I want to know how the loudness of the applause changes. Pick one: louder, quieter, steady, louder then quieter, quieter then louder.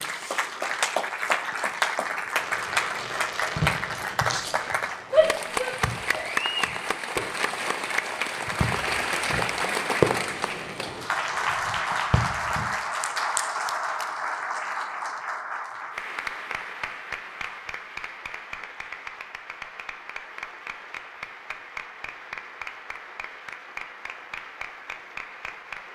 quieter.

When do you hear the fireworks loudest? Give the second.
10 s.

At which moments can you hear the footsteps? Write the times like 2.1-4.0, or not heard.
not heard.